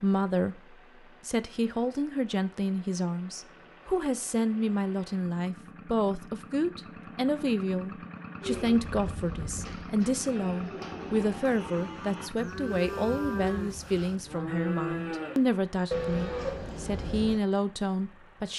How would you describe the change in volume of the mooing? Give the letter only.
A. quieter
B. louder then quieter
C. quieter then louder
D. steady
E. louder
E.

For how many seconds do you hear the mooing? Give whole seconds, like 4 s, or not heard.
9 s.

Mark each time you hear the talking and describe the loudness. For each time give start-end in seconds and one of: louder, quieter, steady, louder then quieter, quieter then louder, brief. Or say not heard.
0.0-18.5 steady.